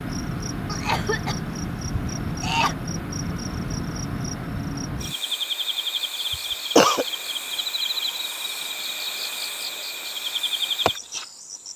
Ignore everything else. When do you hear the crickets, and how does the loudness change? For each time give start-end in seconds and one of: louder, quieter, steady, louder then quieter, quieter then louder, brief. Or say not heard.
0.0-11.7 steady.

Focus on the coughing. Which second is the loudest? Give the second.
7 s.